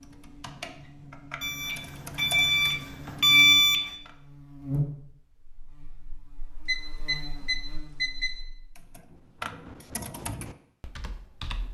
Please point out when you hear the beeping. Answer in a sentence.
The beeping can be heard from 1.4 to 3.8 s and from 6.7 to 8.3 s.